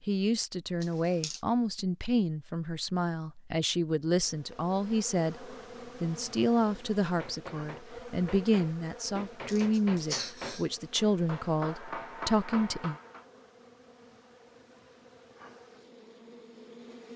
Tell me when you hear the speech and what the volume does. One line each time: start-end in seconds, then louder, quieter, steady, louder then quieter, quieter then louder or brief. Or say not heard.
0.1-12.9 steady.